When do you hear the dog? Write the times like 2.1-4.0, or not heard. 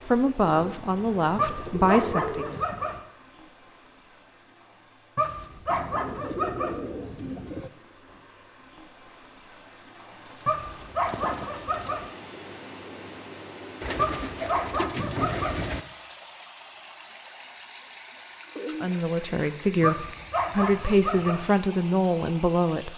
1.4-3.0, 5.2-6.8, 10.4-12.1, 13.9-15.6, 19.8-21.4.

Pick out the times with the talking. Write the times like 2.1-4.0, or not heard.
0.1-2.6, 18.8-22.9.